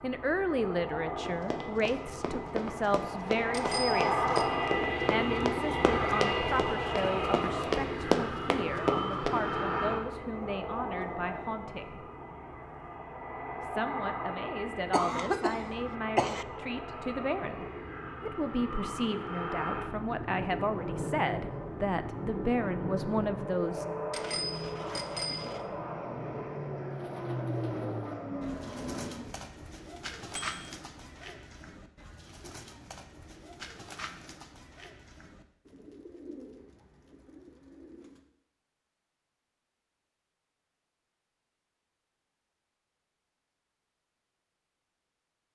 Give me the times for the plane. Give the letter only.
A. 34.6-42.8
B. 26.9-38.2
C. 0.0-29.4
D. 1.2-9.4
C.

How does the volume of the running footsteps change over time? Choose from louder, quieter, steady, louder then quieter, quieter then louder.
louder.